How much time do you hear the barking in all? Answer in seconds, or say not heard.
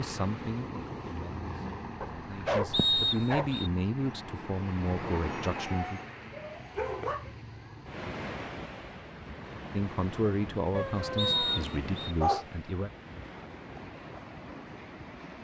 5 s.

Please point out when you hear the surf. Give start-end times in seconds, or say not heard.
0.0-15.4.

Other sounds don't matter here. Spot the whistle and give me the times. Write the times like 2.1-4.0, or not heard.
2.7-3.7, 11.2-12.2.